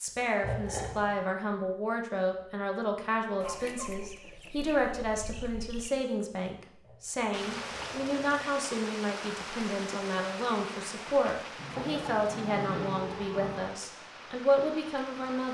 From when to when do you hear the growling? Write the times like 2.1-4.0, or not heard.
0.4-1.2, 6.8-8.6, 11.6-13.6.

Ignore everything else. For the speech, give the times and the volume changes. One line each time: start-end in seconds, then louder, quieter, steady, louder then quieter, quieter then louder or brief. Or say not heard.
0.0-15.5 steady.